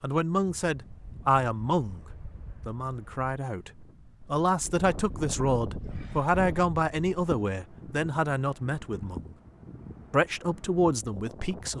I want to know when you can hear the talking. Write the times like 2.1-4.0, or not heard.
0.0-2.0, 2.6-9.3, 10.1-11.7.